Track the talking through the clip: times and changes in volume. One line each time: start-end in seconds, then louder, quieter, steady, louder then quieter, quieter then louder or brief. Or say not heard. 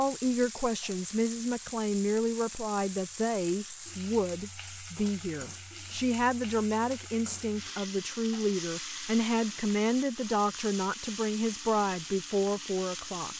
0.0-13.3 steady.